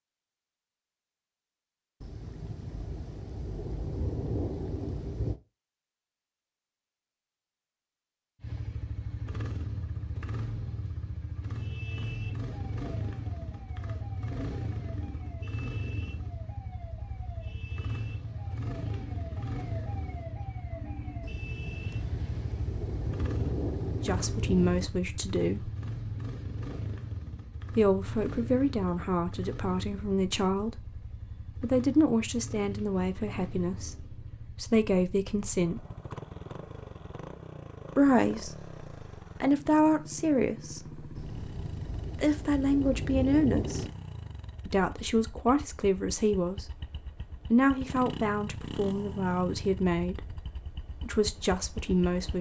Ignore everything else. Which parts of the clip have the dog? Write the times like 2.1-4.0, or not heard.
not heard.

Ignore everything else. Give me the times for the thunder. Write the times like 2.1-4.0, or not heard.
2.0-5.4, 21.2-24.9, 41.1-43.9.